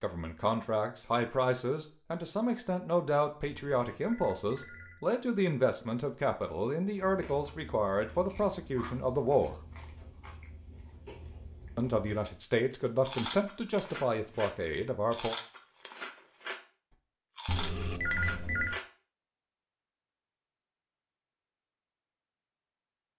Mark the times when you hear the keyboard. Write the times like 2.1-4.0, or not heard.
not heard.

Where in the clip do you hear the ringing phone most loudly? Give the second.
18 s.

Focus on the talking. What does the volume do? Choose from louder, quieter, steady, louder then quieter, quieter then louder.
steady.